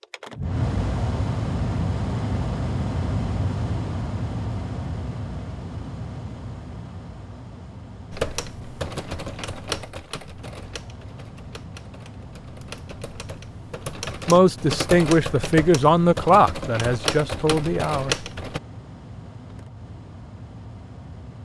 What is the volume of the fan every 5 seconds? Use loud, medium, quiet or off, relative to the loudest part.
loud, medium, quiet, quiet, quiet.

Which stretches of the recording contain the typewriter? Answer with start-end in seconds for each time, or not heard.
8.1-18.6.